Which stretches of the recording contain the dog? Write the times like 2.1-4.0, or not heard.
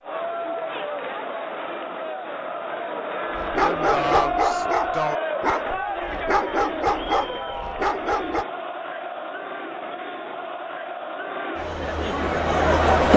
3.4-8.4.